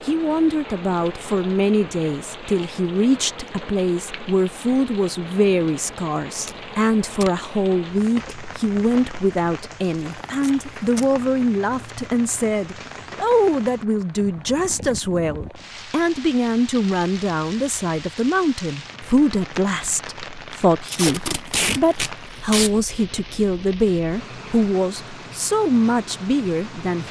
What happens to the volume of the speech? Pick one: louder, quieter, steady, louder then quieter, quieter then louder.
steady.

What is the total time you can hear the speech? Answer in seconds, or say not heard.
27 s.